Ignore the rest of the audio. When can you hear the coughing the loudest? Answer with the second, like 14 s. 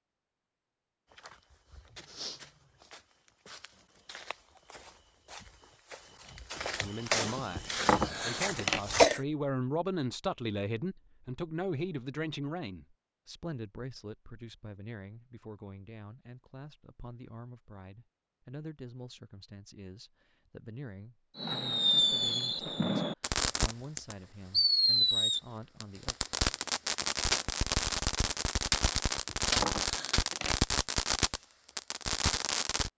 9 s.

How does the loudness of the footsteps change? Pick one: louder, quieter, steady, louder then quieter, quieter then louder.
quieter then louder.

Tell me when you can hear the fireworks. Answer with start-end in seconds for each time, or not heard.
21.4-32.9.